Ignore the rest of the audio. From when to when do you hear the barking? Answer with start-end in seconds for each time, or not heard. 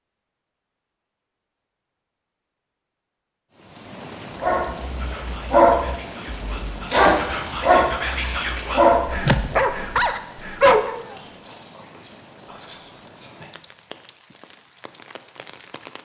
4.4-11.2.